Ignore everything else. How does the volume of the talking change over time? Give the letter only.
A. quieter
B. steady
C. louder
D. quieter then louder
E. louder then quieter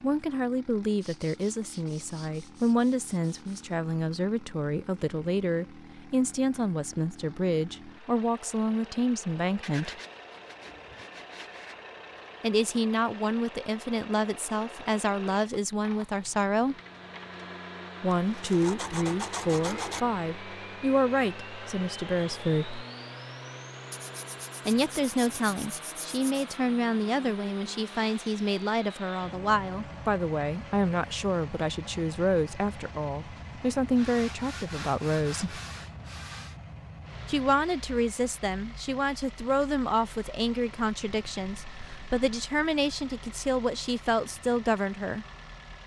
B.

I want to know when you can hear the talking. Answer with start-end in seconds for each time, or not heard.
0.0-9.9, 12.4-16.8, 18.0-22.9, 24.6-35.6, 37.2-45.2.